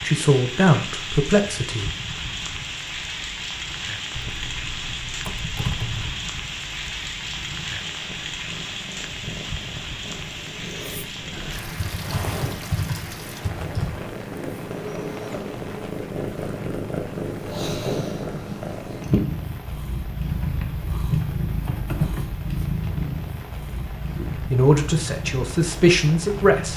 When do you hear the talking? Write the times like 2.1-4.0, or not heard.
0.0-1.9, 24.1-26.7.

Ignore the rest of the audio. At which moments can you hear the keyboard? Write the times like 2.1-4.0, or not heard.
4.2-6.2, 11.3-14.0, 20.2-22.2.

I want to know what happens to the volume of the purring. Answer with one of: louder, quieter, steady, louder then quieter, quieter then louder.
louder.